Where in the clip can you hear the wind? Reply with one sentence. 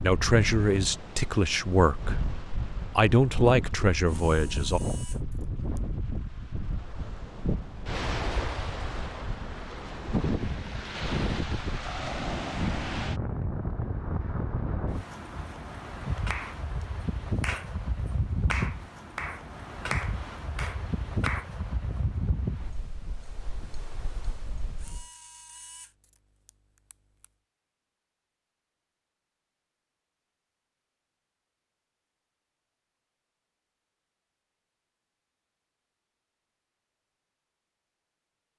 You can hear the wind from 0.0 to 25.1 s.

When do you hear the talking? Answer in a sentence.
You can hear the talking from 0.0 to 2.4 s and from 3.0 to 4.8 s.